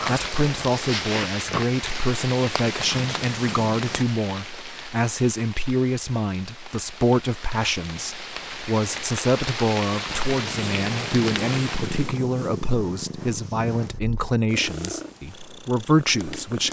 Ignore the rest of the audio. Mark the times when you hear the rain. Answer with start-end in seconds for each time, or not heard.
0.0-12.2.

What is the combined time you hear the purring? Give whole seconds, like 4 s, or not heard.
11 s.